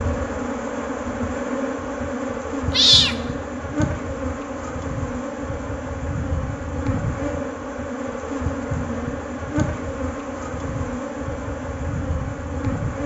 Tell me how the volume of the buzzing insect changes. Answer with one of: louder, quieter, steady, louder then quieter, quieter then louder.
steady.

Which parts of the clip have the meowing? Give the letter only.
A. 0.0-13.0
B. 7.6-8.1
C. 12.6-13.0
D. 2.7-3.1
D.